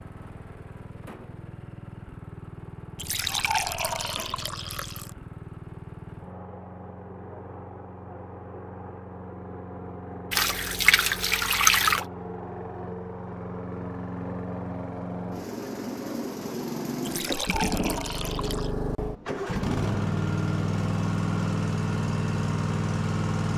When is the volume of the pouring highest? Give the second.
12 s.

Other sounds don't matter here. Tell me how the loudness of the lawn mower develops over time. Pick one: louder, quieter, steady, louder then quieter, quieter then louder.
louder.